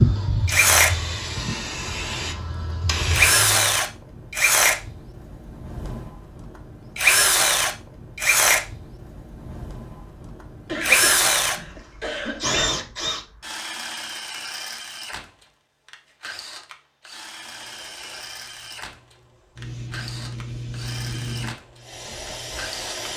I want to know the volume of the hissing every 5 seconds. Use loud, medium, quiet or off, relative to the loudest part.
loud, off, off, quiet, medium.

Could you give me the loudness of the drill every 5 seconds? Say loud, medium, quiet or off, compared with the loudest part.
loud, loud, loud, quiet, quiet.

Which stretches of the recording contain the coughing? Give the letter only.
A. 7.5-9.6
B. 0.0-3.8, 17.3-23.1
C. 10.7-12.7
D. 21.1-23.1
C.